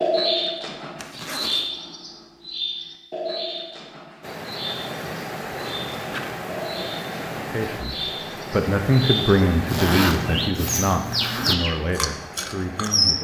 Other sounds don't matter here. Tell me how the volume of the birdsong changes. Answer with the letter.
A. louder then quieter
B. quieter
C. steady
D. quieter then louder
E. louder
D.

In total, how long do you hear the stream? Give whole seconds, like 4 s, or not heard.
9 s.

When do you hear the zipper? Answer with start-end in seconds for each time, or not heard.
0.9-1.7, 5.5-6.3, 9.7-11.6.